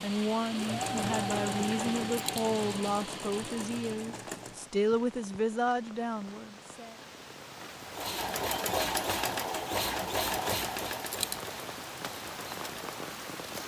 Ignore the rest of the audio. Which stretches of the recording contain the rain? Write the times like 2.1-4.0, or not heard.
0.0-13.6.